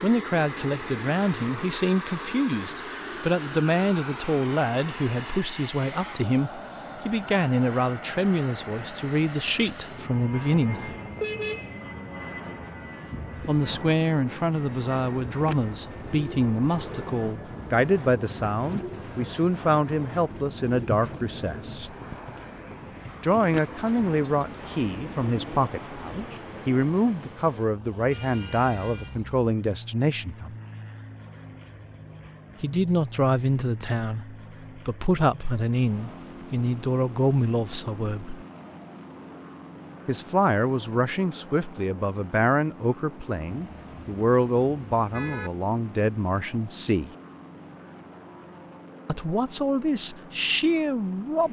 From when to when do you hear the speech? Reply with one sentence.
The speech can be heard from 0.0 to 10.9 s, from 13.4 to 21.9 s, from 23.2 to 30.6 s, from 32.6 to 38.5 s, from 40.0 to 47.1 s and from 49.0 to 51.4 s.